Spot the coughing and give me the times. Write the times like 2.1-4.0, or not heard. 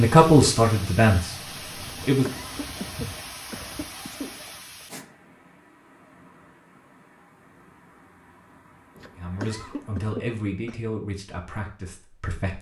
2.0-4.3, 8.9-10.8.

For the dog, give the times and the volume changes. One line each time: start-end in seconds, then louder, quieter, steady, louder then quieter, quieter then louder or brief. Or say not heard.
not heard.